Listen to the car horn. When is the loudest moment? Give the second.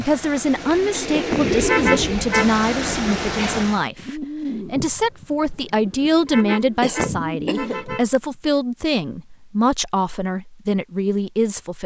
2 s.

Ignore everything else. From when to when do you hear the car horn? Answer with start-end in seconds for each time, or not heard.
1.6-2.5, 6.2-8.1.